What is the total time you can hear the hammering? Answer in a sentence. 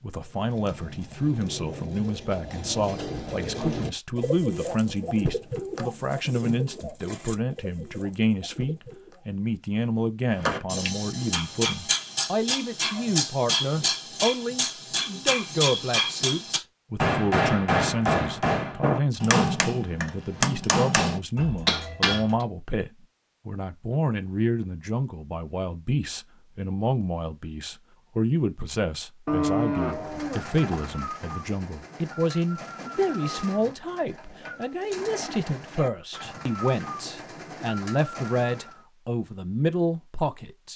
You can hear the hammering for 12 seconds altogether.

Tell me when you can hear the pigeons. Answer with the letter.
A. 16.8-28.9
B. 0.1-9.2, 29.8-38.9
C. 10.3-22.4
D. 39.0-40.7
B.